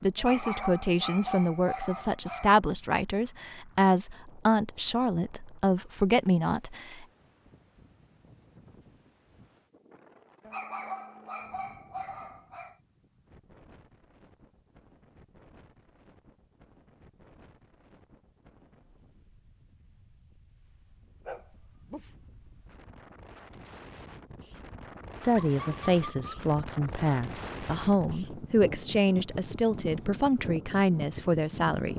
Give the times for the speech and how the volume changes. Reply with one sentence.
You can hear the speech from 0.0 to 7.0 s, at a steady volume; and from 25.1 to 31.9 s, at a steady volume.